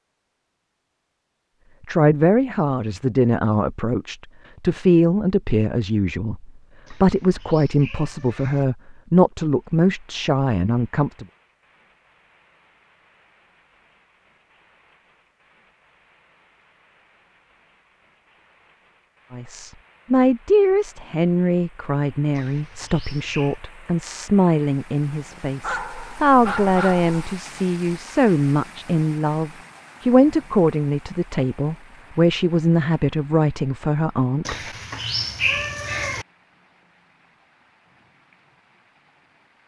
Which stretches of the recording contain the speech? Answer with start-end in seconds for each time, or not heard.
1.9-11.2, 19.3-34.5.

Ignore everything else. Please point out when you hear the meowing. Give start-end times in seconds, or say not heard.
6.8-8.7, 22.3-23.6, 34.5-36.2.